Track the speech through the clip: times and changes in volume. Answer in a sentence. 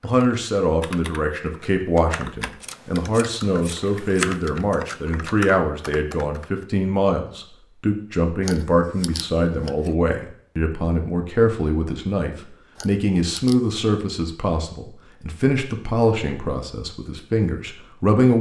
You can hear the speech from 0.0 to 18.3 s, at a steady volume.